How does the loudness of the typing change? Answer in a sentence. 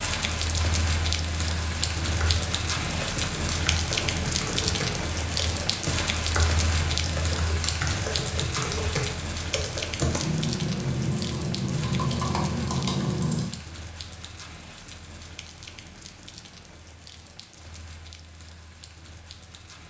The volume of the typing goes up.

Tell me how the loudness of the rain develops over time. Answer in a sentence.
The loudness of the rain goes down.